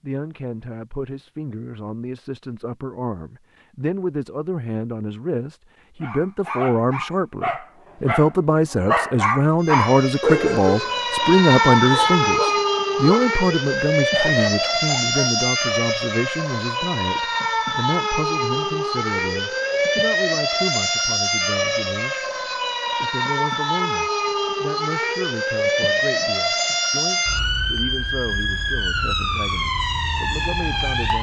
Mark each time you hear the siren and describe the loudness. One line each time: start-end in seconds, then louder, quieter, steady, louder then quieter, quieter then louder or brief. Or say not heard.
9.6-31.1 steady.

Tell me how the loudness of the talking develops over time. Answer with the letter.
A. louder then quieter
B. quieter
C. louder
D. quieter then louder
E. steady
A.